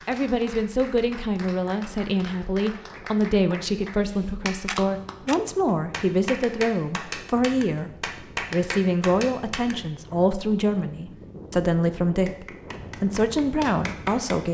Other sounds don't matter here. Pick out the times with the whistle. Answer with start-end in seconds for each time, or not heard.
not heard.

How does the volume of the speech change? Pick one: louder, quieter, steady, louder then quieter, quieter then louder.
steady.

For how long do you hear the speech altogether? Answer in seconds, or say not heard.
14 s.